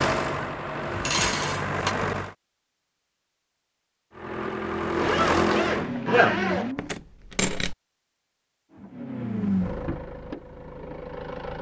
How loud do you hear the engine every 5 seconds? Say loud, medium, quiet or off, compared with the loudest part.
loud, loud, medium.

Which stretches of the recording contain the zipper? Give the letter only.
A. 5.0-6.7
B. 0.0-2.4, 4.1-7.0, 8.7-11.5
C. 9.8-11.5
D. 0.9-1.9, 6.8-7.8
A.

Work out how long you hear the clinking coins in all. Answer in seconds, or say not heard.
2 s.